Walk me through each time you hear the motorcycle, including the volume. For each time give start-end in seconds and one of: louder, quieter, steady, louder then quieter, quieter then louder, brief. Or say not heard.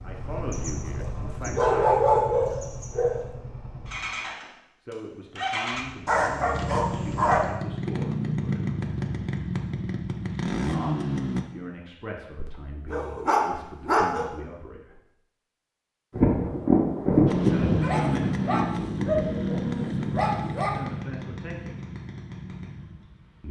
0.0-11.4 louder
17.2-23.4 quieter.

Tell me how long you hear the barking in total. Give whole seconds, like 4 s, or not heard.
9 s.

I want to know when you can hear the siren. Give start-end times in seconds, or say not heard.
not heard.